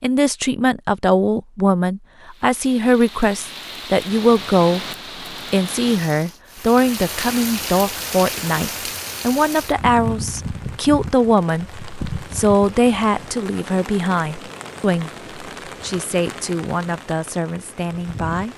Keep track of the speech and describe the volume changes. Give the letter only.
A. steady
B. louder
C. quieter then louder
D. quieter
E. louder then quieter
D.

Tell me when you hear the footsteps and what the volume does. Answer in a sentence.
You can't hear the footsteps here.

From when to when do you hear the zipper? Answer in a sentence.
You can't hear the zipper here.